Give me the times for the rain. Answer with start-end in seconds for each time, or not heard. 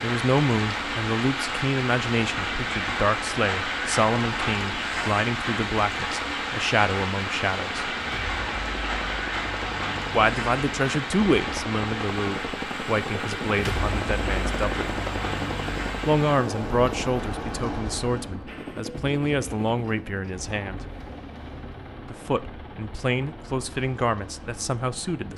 0.0-18.4.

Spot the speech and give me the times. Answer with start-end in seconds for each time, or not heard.
0.0-7.8, 10.1-15.0, 16.1-20.9, 22.1-25.3.